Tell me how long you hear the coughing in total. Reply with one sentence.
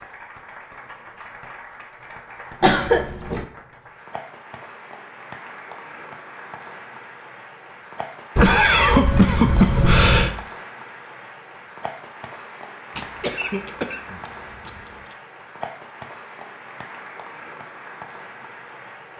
The coughing can be heard for 5 seconds in total.